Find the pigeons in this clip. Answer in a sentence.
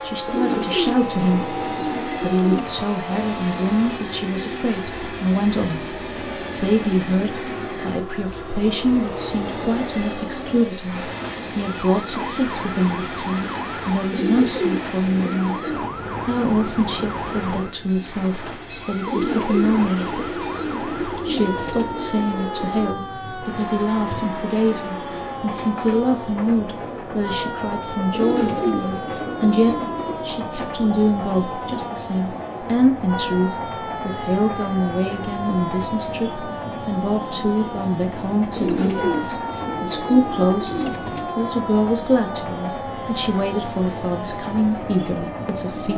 The pigeons can be heard from 0.2 to 2.9 s, from 14.1 to 15.8 s, from 19.1 to 21.9 s, from 28.1 to 30.3 s and from 38.5 to 41.4 s.